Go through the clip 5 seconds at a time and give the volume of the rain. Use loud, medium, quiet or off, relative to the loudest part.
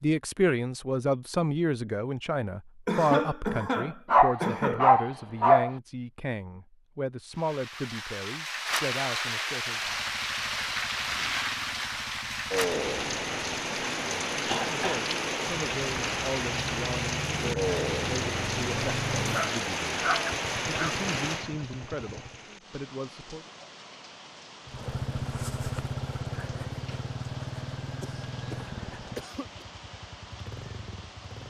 off, loud, loud, loud, medium, quiet, quiet.